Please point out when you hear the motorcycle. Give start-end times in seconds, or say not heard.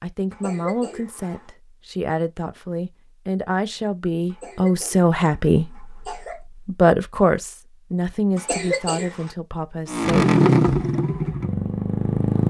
9.8-12.4.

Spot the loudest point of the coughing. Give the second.
9 s.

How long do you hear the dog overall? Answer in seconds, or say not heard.
not heard.